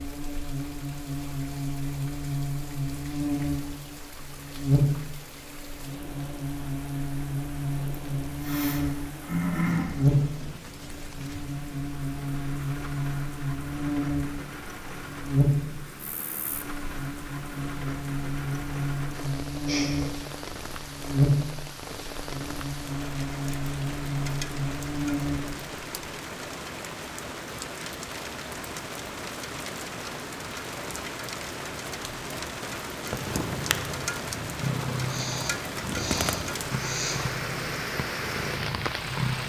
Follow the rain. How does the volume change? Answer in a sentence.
The volume of the rain goes up.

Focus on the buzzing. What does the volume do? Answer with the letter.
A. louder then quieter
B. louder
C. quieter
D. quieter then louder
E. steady
E.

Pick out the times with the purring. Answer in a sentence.
You can hear the purring from 33.0 to 39.4 s.